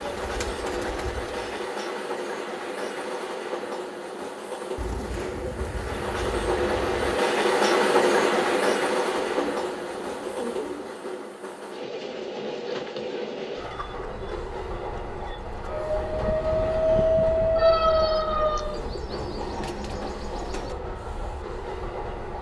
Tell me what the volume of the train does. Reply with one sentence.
The loudness of the train goes up, then down.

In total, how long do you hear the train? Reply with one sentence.
You can hear the train for 22 seconds altogether.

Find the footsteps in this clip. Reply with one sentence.
You can't hear the footsteps here.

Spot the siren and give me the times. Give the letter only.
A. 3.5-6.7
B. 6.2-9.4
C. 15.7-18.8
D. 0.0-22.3
C.